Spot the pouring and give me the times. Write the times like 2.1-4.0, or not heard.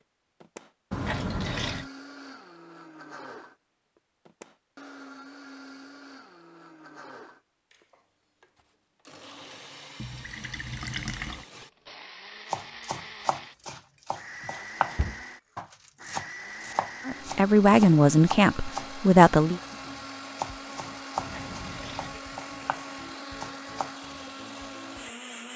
0.9-1.9, 10.0-11.4, 21.1-22.2.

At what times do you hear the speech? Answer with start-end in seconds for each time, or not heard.
17.1-19.6.